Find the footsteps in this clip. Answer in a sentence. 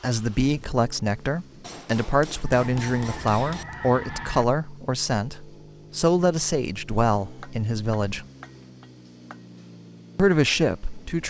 The footsteps can't be heard in this clip.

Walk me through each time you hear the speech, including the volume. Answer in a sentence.
You can hear the speech from 0.0 to 8.2 s, at a steady volume; and briefly from 10.2 to 11.2 s.